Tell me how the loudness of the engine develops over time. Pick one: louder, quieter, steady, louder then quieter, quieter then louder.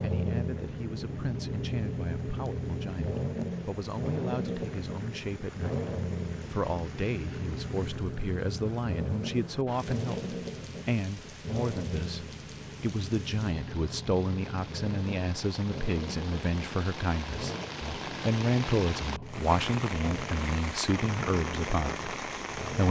quieter.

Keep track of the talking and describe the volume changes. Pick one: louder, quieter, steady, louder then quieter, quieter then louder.
louder.